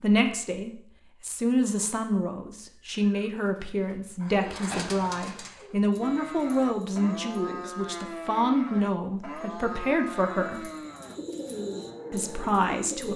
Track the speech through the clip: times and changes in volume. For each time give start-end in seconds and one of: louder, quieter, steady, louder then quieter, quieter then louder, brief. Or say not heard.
0.0-10.7 steady
12.1-13.1 brief.